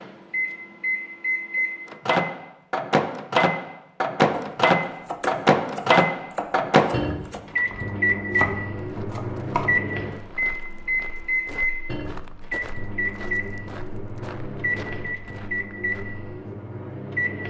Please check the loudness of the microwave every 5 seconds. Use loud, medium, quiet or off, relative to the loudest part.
loud, loud, medium, medium.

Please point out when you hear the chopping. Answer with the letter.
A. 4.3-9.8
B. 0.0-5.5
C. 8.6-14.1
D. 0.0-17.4
A.